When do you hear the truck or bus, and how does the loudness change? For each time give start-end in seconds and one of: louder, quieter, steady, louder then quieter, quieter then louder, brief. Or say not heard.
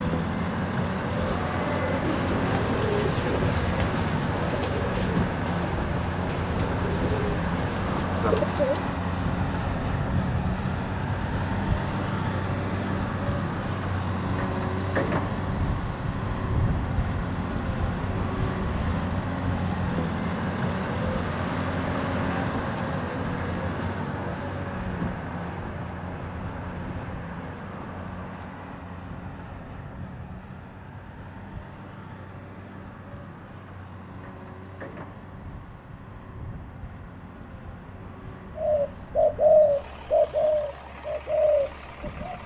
0.0-42.4 quieter.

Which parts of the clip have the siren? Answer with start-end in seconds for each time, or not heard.
not heard.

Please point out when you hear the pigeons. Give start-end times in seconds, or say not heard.
1.1-8.8, 38.5-42.4.